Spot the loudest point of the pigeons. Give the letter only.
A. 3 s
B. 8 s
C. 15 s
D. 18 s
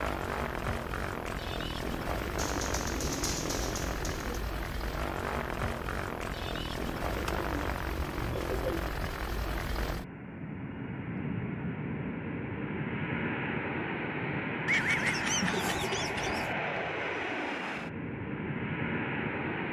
C.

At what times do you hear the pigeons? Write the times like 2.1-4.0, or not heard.
2.4-4.4, 7.1-8.9, 14.7-16.6.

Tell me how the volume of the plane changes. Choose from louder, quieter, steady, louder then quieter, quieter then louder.
steady.